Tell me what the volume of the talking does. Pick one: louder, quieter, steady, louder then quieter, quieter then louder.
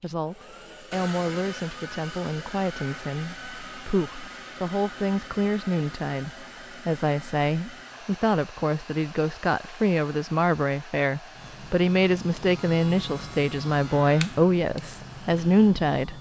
louder.